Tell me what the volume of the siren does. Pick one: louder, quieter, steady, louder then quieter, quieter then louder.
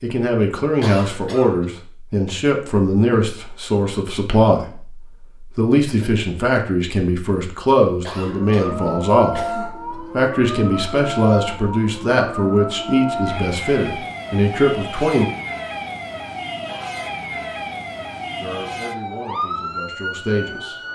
steady.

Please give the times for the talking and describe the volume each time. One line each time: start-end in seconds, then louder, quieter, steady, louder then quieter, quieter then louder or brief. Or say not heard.
0.0-15.3 steady
18.4-20.8 brief.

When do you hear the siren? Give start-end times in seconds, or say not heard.
8.2-20.9.